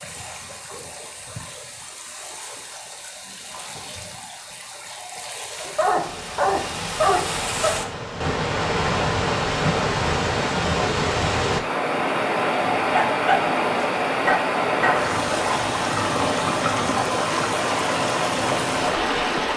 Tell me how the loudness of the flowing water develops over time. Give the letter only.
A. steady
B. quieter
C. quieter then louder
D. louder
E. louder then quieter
D.